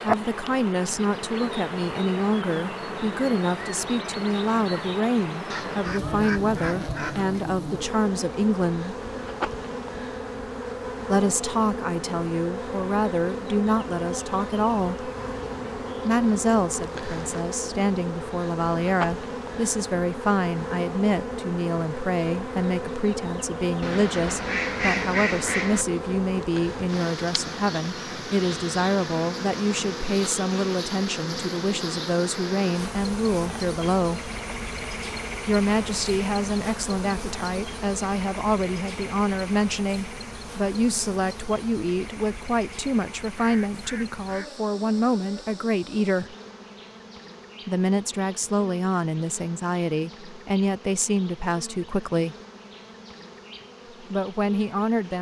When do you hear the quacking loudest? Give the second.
25 s.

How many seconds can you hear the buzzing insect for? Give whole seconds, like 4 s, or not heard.
55 s.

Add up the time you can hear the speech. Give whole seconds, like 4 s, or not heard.
48 s.